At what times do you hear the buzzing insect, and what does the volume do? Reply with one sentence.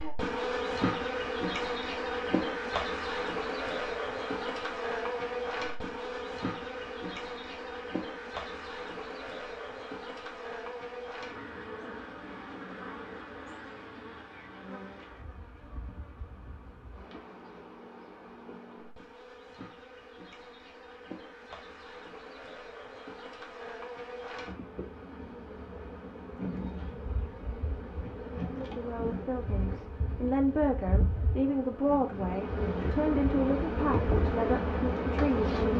The buzzing insect can be heard from 0.0 to 35.7 s, getting quieter then louder.